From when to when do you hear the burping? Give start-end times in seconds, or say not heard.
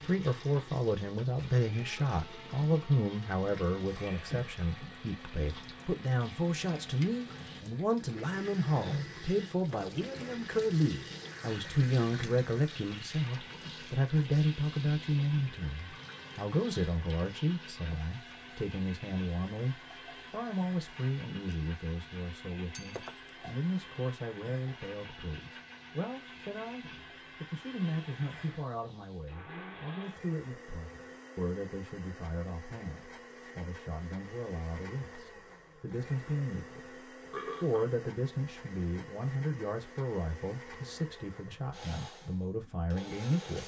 37.3-38.0.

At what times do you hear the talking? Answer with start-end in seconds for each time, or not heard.
0.0-43.6.